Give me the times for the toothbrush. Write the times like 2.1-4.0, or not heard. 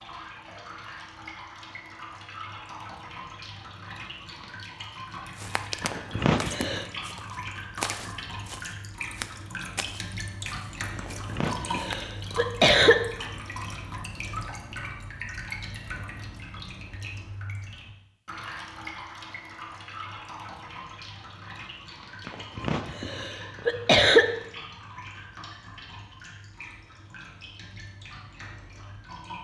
not heard.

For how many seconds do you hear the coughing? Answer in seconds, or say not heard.
5 s.